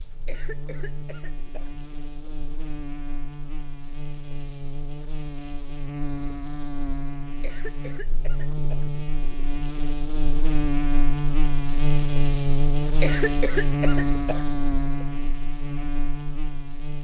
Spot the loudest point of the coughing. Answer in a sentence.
The volume of the coughing peaks at 13 seconds.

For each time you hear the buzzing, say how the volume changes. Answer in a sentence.
The buzzing can be heard from 0.0 to 17.0 s, getting louder.